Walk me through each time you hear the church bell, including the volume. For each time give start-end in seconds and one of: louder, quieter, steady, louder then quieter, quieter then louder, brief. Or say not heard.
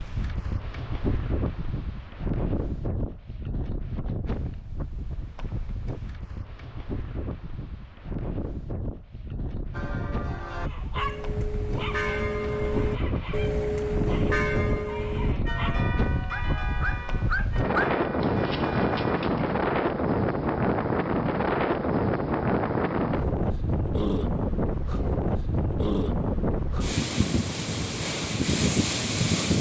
9.7-19.1 louder then quieter.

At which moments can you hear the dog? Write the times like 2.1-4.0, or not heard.
10.6-19.6.